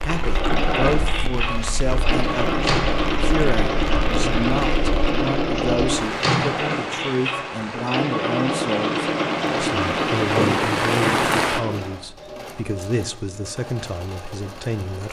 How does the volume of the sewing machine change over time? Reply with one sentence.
The loudness of the sewing machine goes down.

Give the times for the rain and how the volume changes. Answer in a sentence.
The rain can be heard from 0.0 to 11.6 s, getting louder.